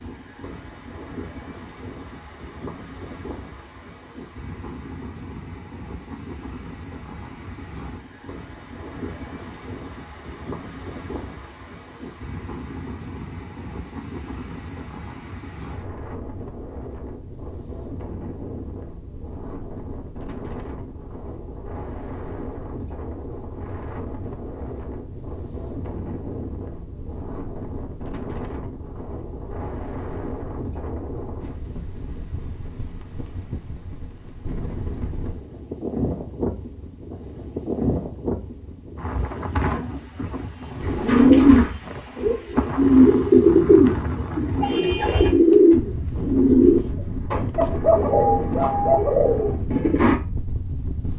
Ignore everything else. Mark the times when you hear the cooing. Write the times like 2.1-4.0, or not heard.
40.8-50.1.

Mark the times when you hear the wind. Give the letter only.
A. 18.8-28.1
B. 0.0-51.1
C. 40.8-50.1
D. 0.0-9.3
B.